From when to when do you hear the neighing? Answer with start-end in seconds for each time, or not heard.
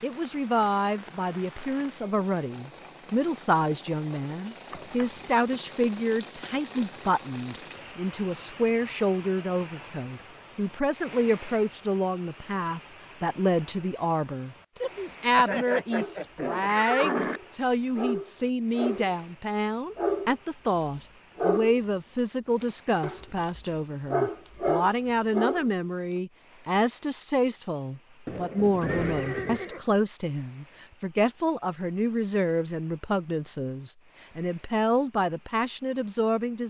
4.7-5.2, 15.3-17.4, 28.2-29.8.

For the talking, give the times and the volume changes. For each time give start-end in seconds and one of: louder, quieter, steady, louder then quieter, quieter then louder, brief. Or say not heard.
0.0-36.6 steady.